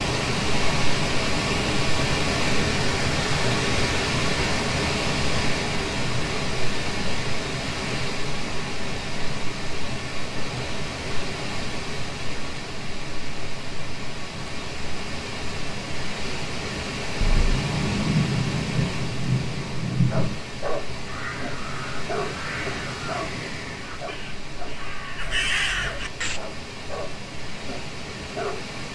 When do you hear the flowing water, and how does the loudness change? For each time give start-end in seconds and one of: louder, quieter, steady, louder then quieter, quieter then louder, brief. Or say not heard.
0.0-28.9 quieter.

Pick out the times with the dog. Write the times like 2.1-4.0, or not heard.
20.1-28.6.